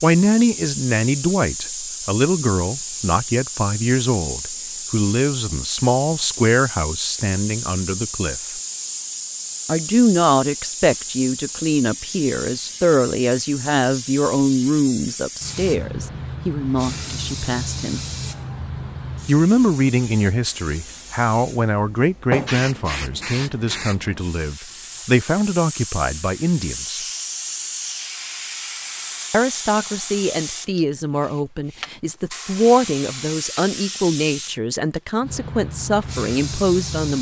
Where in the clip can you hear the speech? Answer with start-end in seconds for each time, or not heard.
0.0-8.6, 9.7-18.0, 19.2-27.0, 29.3-37.1.